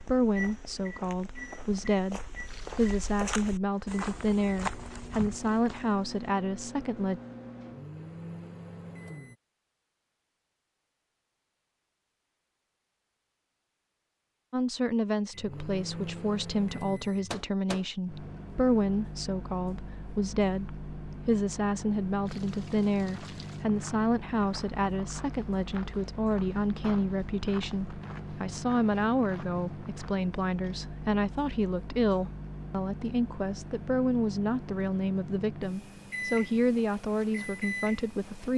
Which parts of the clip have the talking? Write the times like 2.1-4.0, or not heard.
0.0-7.2, 14.5-38.5.